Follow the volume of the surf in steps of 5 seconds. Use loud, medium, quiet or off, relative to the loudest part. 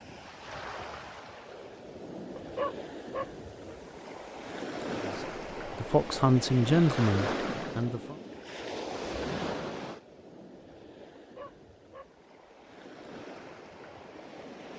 medium, loud, quiet.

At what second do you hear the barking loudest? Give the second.
3 s.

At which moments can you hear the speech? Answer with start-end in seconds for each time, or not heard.
5.0-8.2.